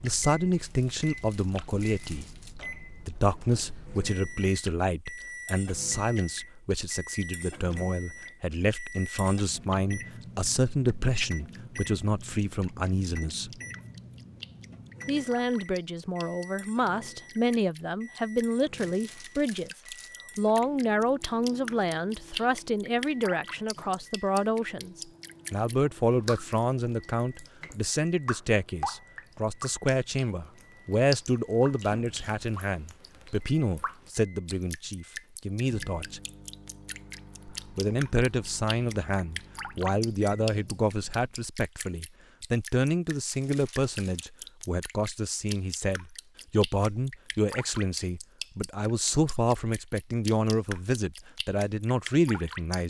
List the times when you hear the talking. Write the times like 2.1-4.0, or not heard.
0.0-2.3, 3.0-13.6, 15.1-19.7, 20.4-36.2, 37.5-52.8.